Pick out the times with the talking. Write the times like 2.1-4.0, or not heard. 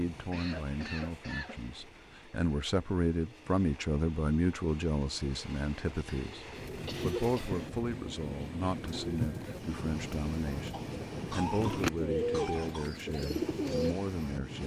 0.0-14.6.